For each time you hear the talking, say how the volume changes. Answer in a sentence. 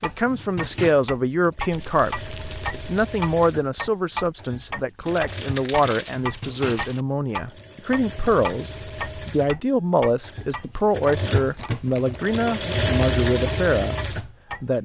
You can hear the talking from 0.0 to 14.8 s, at a steady volume.